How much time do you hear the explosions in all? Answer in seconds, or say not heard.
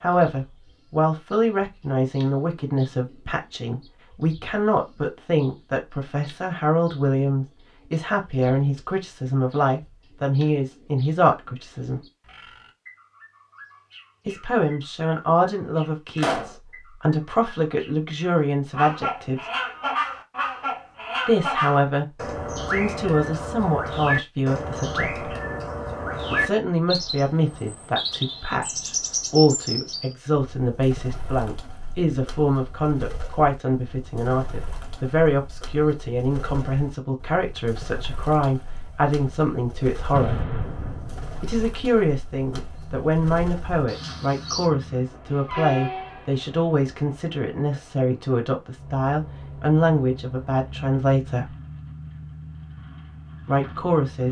2 s.